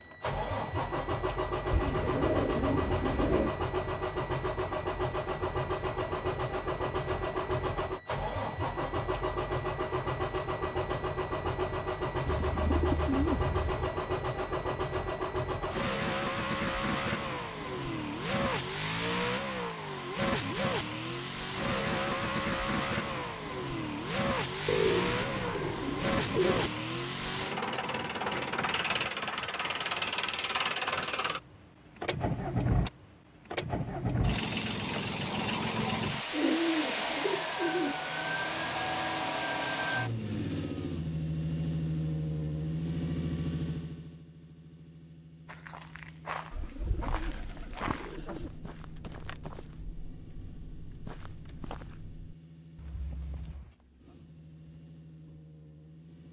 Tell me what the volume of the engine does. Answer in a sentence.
The loudness of the engine goes down.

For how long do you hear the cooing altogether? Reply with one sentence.
The cooing can be heard for 9 seconds in total.